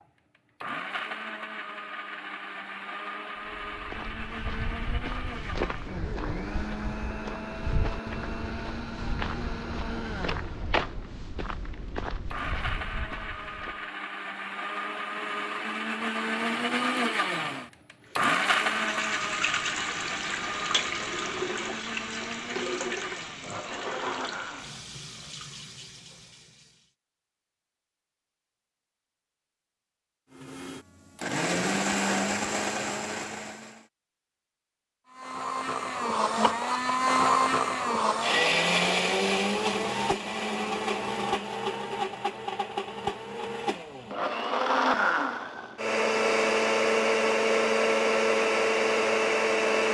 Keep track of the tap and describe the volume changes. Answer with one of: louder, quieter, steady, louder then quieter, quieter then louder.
quieter.